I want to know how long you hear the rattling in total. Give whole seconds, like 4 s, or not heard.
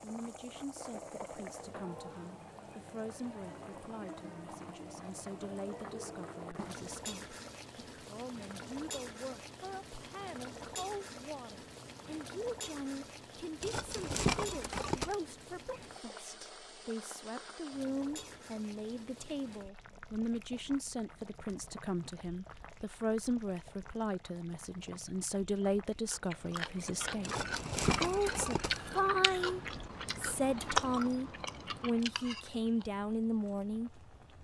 3 s.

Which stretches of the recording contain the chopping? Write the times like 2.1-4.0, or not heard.
not heard.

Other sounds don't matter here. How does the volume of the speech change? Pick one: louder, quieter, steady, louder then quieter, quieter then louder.
louder.